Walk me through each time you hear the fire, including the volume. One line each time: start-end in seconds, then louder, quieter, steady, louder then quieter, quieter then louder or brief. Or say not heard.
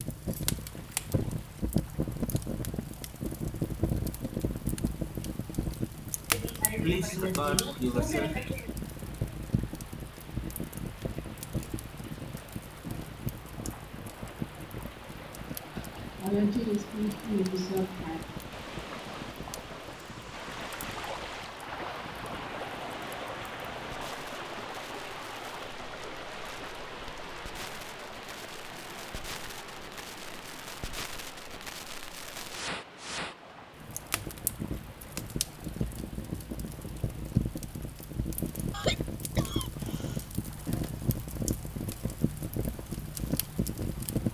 0.0-44.2 quieter then louder.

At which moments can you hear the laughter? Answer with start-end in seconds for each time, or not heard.
6.3-8.7, 15.8-18.4, 38.7-40.2.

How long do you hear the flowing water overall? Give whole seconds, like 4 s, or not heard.
44 s.